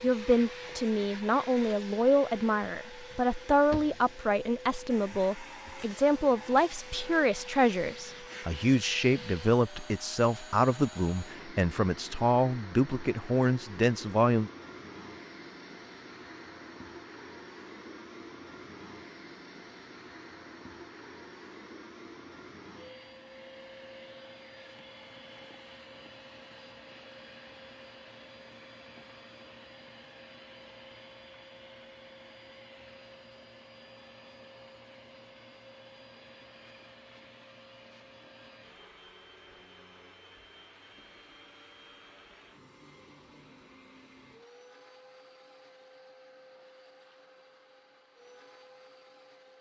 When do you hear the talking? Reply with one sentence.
You can hear the talking from 0.0 to 14.5 s.